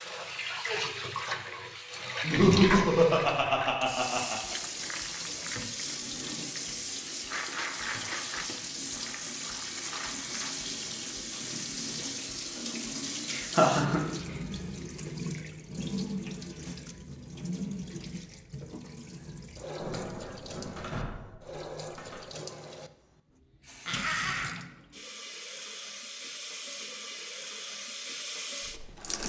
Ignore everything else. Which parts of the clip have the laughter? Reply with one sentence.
The laughter can be heard from 2.2 to 4.5 s, from 13.2 to 14.1 s and from 23.9 to 24.6 s.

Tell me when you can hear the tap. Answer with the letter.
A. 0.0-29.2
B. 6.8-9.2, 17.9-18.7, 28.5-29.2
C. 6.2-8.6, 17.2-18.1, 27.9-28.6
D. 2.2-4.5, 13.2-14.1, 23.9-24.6
A.